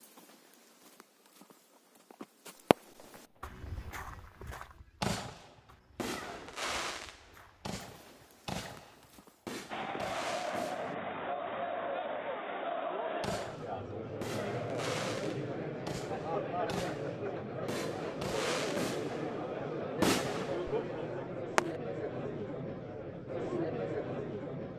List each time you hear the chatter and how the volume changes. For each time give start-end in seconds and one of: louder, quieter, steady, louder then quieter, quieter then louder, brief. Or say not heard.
9.7-24.7 steady.